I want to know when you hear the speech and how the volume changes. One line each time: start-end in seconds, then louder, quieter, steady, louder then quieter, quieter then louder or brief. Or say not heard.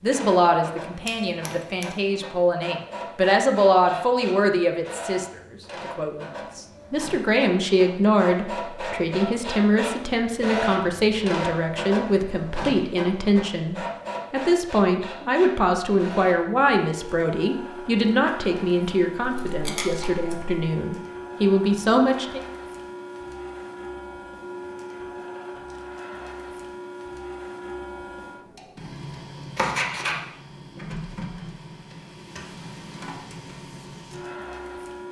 0.0-22.4 steady.